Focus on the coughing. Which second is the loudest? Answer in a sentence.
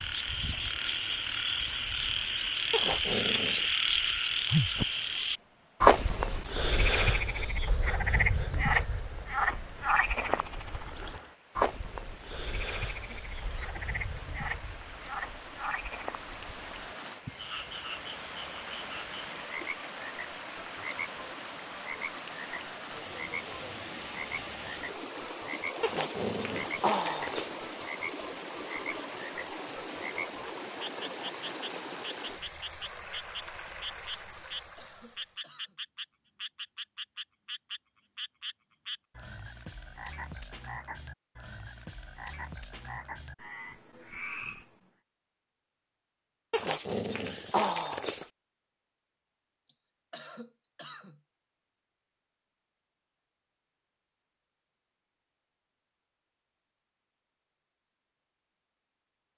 The loudest moment of the coughing is at 50 seconds.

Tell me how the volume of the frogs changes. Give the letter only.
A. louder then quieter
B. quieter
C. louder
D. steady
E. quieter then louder
B.